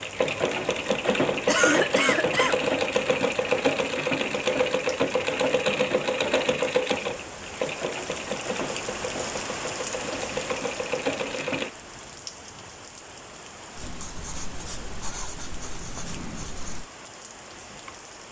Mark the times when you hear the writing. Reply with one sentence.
The writing can be heard from 13.8 to 16.9 s.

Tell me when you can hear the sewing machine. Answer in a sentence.
You can hear the sewing machine from 0.0 to 11.7 s.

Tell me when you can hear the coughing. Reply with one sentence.
You can hear the coughing from 1.4 to 2.5 s.